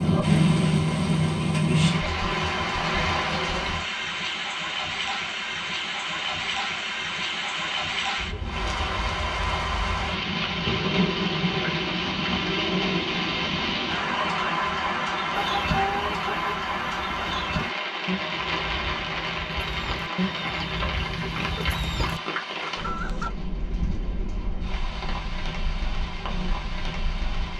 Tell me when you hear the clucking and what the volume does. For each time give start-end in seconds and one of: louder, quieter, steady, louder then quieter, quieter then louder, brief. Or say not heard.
15.3-23.3 quieter then louder.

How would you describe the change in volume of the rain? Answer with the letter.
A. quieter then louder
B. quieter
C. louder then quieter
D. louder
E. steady
B.